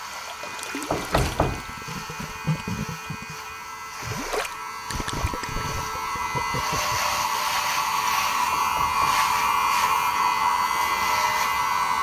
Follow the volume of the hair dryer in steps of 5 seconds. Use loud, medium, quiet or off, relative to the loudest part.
quiet, loud, loud.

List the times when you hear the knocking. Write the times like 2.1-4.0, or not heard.
0.9-1.8, 8.5-9.2.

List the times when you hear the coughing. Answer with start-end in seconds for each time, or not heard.
not heard.